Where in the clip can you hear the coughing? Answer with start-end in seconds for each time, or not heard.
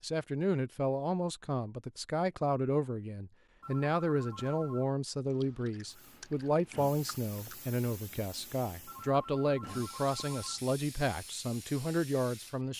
not heard.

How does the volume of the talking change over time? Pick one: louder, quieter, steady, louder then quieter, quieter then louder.
steady.